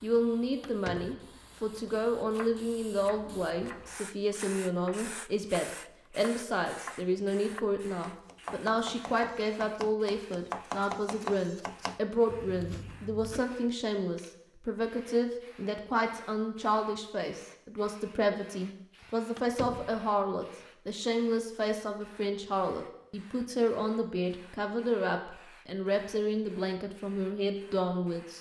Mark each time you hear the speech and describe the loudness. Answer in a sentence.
You can hear the speech from 0.0 to 28.3 s, at a steady volume.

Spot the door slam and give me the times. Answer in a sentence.
You can hear the door slam from 0.6 to 1.2 s and from 19.4 to 20.0 s.